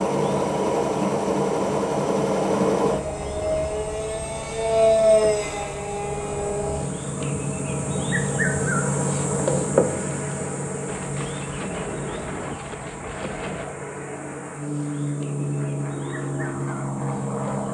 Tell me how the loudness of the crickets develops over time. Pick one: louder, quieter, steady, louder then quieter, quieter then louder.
louder then quieter.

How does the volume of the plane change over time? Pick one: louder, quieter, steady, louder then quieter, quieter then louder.
quieter then louder.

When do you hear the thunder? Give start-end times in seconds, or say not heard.
10.8-13.8.